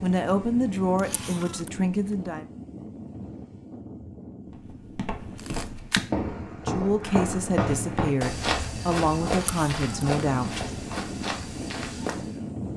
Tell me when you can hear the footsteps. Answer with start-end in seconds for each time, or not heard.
4.5-12.4.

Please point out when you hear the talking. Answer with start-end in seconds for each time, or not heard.
0.0-2.5, 6.5-10.6.